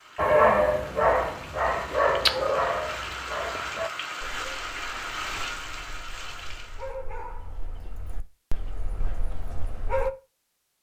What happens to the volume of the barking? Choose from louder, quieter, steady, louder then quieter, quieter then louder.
quieter then louder.